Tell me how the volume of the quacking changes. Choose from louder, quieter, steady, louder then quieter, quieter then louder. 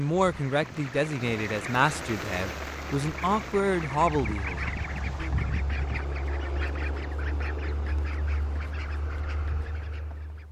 louder then quieter.